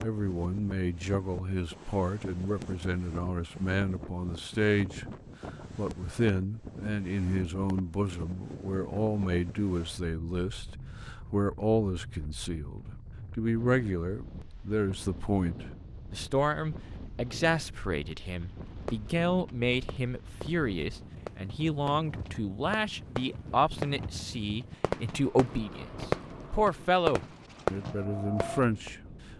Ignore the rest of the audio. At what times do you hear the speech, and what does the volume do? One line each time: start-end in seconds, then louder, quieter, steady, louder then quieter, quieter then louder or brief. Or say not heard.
0.0-5.0 steady
5.8-29.0 steady.